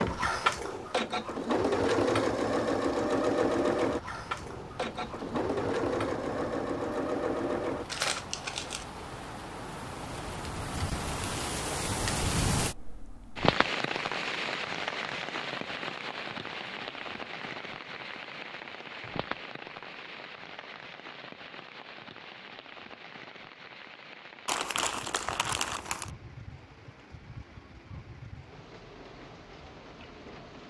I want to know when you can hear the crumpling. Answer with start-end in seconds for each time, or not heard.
7.8-8.8, 24.4-26.1.